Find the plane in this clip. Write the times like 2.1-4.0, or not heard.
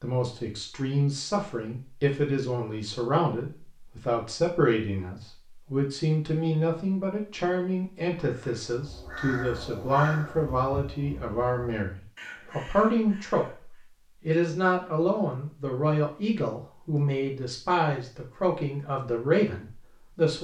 not heard.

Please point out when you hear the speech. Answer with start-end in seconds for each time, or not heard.
0.0-20.4.